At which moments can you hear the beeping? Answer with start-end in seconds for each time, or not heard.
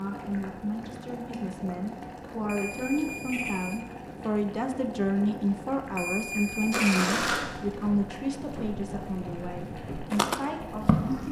2.5-3.8, 6.0-7.0.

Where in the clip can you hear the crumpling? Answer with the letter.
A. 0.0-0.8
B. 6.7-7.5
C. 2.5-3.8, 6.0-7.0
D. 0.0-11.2
B.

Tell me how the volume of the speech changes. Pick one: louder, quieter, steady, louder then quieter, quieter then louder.
louder then quieter.